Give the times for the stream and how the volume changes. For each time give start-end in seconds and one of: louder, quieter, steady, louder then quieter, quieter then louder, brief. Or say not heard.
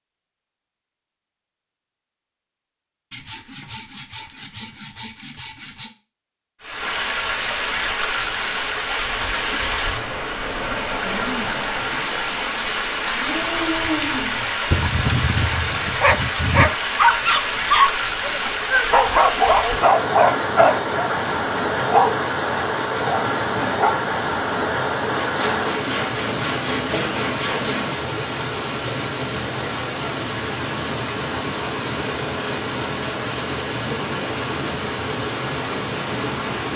6.6-36.7 steady.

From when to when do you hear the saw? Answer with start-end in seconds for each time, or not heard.
3.1-5.9, 25.1-28.1.